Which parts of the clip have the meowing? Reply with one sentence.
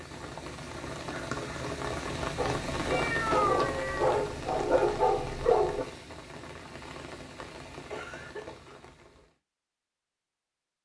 The meowing can be heard from 2.9 to 4.2 s.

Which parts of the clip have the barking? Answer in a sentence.
You can hear the barking from 2.4 to 5.8 s.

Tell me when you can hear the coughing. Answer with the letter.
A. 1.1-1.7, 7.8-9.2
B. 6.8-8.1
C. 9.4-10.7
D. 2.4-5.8
A.